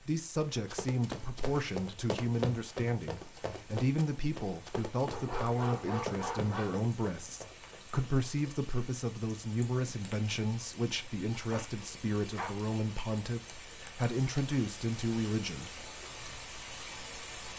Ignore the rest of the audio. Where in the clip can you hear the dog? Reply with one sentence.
You can hear the dog from 5.1 to 6.8 s and from 11.5 to 12.6 s.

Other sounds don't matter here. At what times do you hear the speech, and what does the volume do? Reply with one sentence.
The speech can be heard from 0.0 to 15.8 s, at a steady volume.